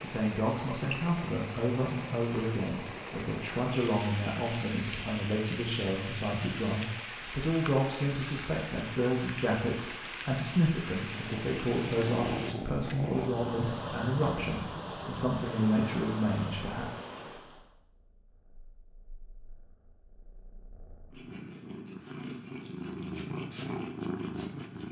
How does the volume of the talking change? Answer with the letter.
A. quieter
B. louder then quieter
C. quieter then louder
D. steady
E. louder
D.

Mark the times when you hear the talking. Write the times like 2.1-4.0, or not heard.
0.0-16.9.